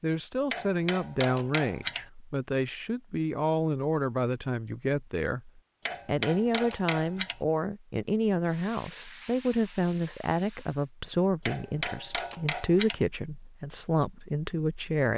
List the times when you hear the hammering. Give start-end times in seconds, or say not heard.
0.5-2.0, 5.8-7.4, 11.4-13.0.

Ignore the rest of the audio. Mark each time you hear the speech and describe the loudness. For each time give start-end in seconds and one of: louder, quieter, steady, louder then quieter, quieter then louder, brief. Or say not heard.
0.0-15.1 steady.